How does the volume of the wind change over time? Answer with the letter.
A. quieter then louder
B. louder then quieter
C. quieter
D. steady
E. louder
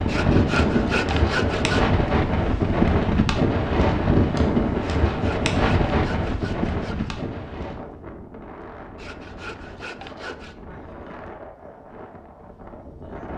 C.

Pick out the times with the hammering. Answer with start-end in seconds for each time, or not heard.
not heard.